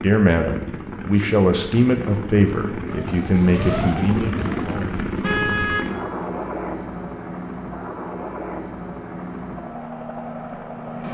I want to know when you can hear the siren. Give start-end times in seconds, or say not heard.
2.9-4.7.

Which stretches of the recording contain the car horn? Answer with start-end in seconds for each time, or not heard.
5.2-5.8.